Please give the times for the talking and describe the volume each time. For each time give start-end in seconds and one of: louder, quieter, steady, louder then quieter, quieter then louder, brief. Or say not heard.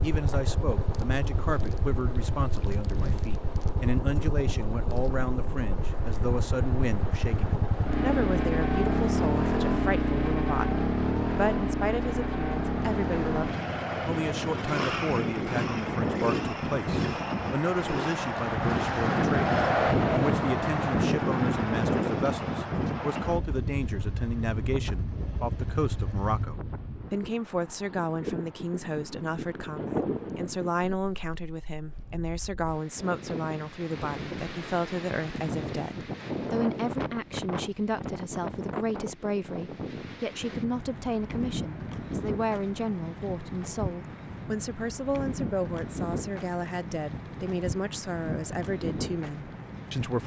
0.0-50.2 steady.